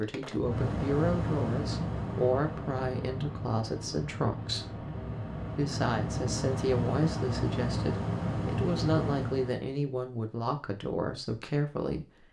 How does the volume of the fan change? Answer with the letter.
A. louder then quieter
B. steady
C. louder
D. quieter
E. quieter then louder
E.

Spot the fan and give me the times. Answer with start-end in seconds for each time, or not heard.
0.0-9.7.